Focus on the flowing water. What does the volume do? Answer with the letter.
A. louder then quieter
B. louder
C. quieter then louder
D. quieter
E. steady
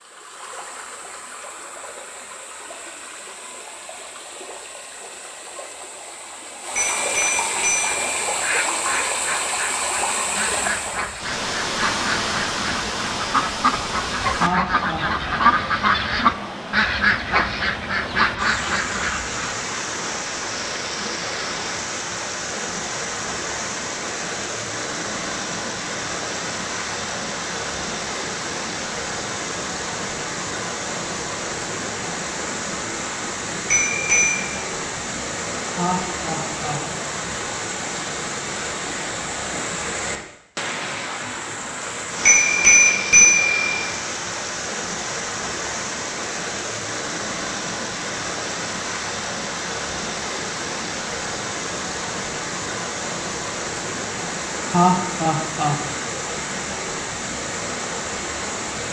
E.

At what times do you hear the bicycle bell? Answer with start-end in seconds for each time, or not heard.
6.8-8.1, 33.7-34.4, 42.2-43.5.